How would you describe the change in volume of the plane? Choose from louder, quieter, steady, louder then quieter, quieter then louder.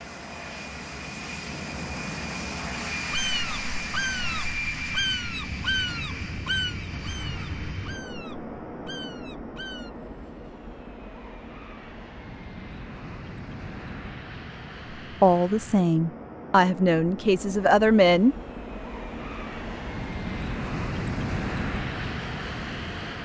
quieter then louder.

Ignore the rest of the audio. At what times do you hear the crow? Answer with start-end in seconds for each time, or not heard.
3.1-9.9.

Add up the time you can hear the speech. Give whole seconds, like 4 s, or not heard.
3 s.